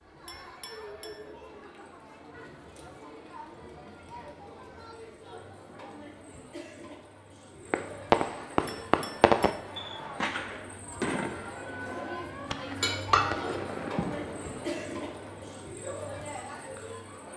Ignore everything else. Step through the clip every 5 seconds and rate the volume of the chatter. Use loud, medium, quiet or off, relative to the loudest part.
medium, medium, loud, loud.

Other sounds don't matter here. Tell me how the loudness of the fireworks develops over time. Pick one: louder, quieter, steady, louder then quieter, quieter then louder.
quieter.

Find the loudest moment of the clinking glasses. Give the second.
13 s.